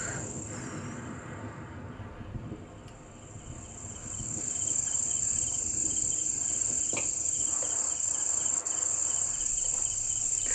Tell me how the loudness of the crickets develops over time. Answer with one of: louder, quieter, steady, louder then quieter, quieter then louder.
louder.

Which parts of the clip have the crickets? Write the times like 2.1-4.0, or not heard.
0.0-10.4.